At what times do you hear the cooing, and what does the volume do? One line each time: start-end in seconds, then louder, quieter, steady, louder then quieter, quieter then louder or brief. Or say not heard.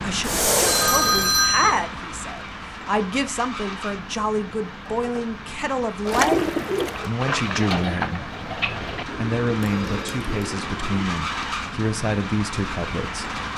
6.1-11.1 quieter.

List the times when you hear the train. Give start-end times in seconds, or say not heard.
0.0-13.5.